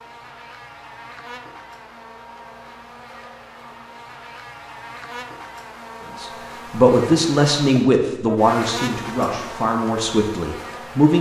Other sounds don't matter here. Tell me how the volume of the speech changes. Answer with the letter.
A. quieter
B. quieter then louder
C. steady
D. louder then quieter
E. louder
A.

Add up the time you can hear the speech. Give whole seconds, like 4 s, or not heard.
5 s.